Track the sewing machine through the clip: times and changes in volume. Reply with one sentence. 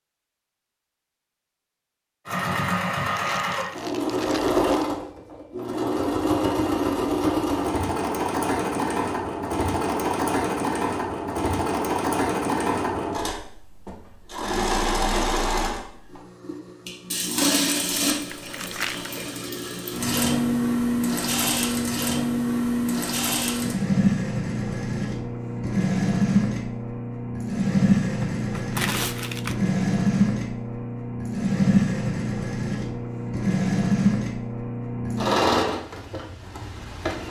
The sewing machine can be heard from 2.2 to 37.2 s, at a steady volume.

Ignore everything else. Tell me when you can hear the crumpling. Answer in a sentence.
You can hear the crumpling from 3.1 to 4.9 s, from 18.1 to 19.1 s and from 28.2 to 29.6 s.